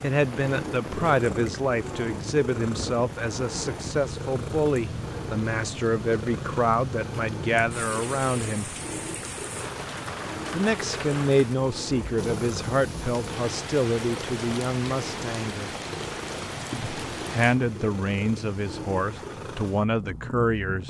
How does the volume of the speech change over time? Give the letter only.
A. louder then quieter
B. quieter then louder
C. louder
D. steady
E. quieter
D.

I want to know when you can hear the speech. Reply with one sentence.
You can hear the speech from 0.0 to 8.7 s, from 10.5 to 15.7 s and from 16.7 to 20.8 s.